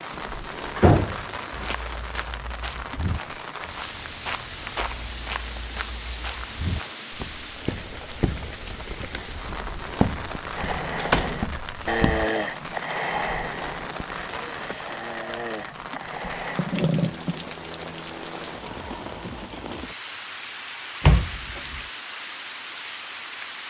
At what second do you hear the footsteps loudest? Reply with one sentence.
The volume of the footsteps peaks at 10 seconds.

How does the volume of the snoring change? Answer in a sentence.
The loudness of the snoring goes down, then up.